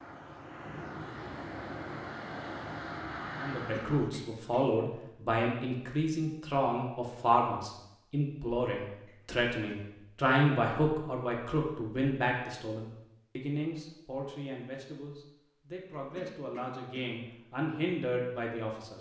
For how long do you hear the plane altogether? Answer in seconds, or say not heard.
4 s.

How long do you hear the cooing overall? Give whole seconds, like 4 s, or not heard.
not heard.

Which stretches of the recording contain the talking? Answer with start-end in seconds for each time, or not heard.
3.4-18.9.